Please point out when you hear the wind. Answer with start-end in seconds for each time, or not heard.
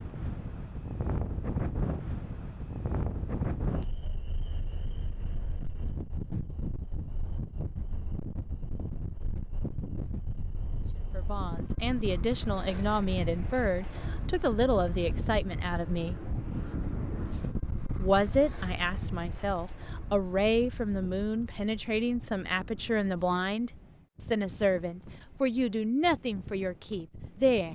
0.0-27.6.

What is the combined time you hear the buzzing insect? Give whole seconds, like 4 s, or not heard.
not heard.